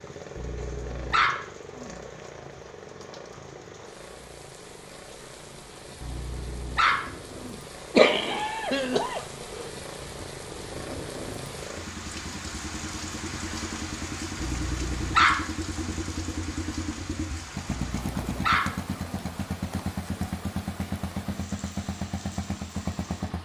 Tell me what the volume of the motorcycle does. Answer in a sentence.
The loudness of the motorcycle goes up.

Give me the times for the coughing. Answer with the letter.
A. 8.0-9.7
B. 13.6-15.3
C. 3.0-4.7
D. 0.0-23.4
A.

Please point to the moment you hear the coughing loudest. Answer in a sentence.
The volume of the coughing peaks at 8 seconds.